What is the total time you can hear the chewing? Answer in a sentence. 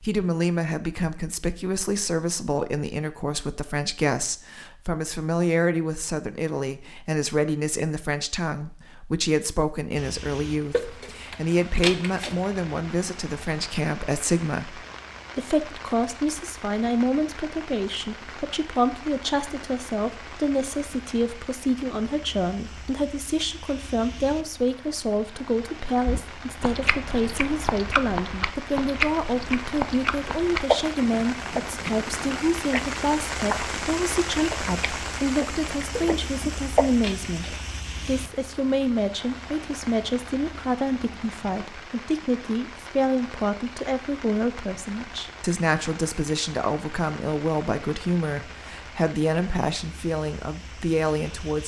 The chewing can be heard for 11 seconds in total.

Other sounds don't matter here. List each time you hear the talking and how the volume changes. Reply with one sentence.
The talking can be heard from 0.0 to 51.6 s, at a steady volume.